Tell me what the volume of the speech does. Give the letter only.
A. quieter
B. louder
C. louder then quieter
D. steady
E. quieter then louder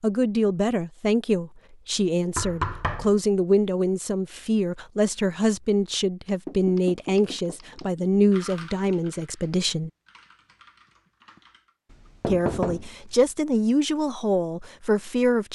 D.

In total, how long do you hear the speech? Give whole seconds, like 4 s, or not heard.
13 s.